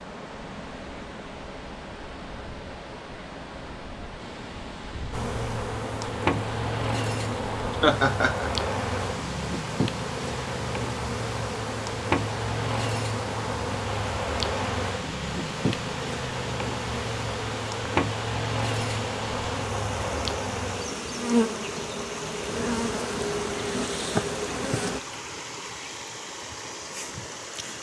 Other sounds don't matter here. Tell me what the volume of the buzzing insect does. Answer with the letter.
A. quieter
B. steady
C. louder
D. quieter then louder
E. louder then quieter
B.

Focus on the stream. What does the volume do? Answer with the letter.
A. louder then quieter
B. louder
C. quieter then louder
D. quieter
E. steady
E.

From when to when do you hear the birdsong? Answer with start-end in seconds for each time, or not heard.
not heard.